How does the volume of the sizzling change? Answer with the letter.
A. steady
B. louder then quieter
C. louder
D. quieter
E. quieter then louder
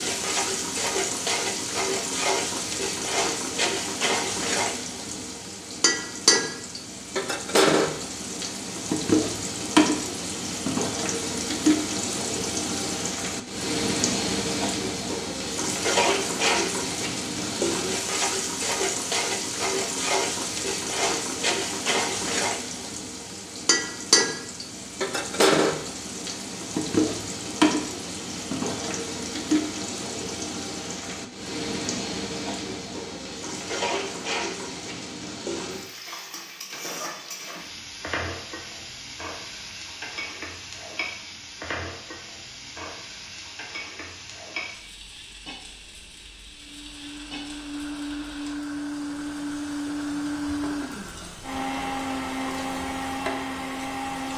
D.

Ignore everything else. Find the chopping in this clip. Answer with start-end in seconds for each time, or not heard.
not heard.